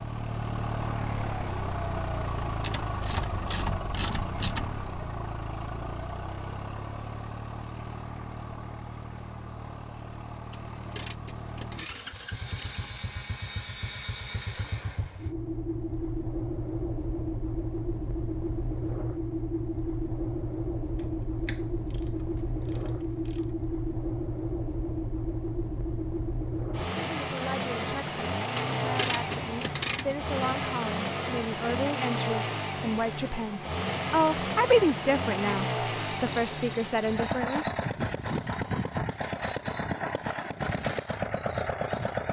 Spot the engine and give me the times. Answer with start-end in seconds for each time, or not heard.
0.0-42.2.